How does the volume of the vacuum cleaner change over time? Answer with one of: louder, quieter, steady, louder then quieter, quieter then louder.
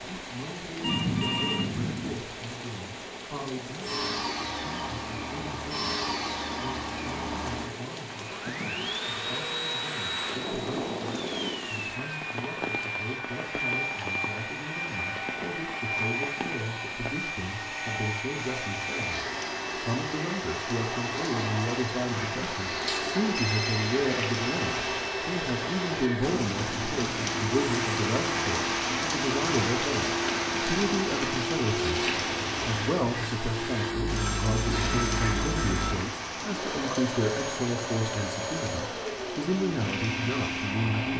steady.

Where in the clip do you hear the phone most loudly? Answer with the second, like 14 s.
1 s.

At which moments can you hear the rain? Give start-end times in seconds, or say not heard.
0.0-41.1.